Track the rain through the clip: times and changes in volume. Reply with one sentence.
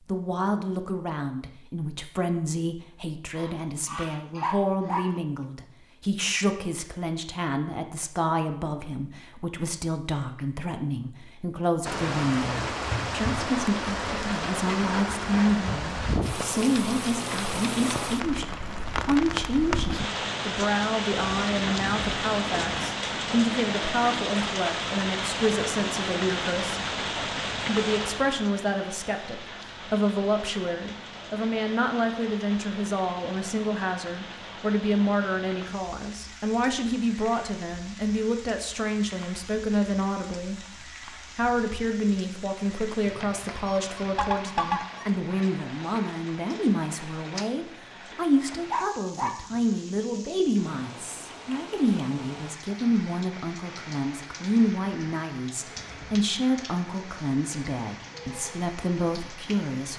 The rain can be heard from 11.8 to 59.9 s, getting quieter.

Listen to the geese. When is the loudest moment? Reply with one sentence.
The volume of the geese peaks at 45 seconds.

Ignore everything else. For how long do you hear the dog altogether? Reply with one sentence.
You can hear the dog for 2 seconds altogether.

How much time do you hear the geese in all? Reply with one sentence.
The geese can be heard for 5 seconds in total.